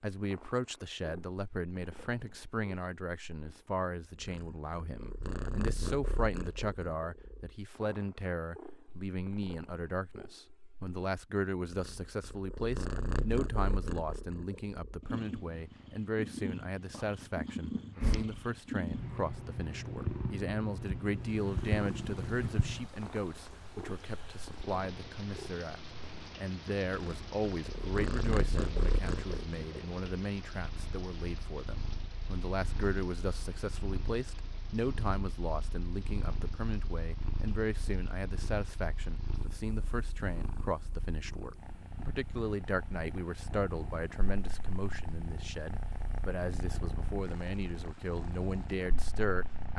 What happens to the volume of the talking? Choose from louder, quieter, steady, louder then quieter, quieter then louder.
steady.